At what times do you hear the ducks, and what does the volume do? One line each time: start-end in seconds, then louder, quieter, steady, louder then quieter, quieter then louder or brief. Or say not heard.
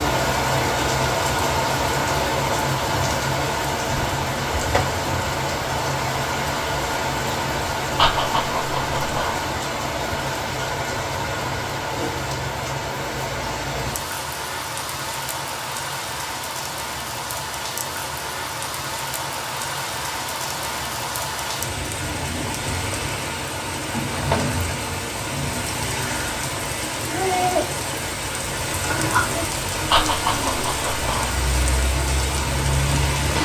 not heard.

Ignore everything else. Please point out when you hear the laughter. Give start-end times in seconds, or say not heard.
8.0-9.4, 29.9-31.3.